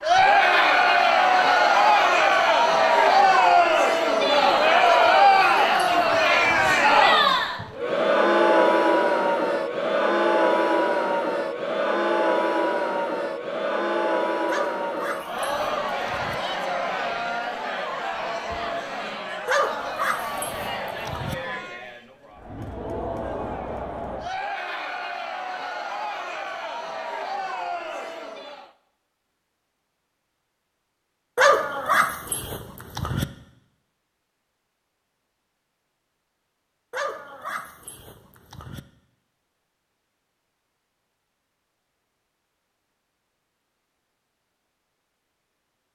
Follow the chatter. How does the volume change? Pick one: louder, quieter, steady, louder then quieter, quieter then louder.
quieter.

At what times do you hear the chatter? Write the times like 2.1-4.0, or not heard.
0.0-28.7.